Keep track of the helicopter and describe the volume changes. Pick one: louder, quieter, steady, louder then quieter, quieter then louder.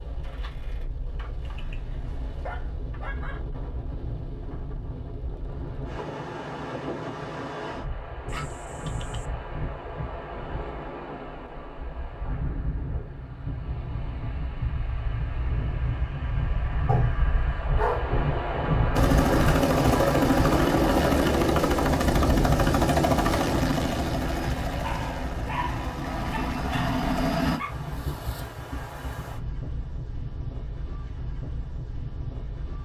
quieter.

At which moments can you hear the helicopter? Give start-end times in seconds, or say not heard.
18.9-27.6.